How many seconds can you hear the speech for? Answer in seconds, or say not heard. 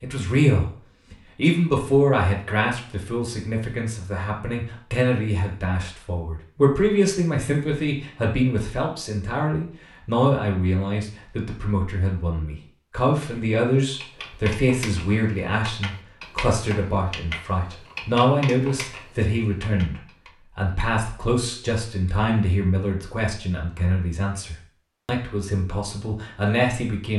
27 s.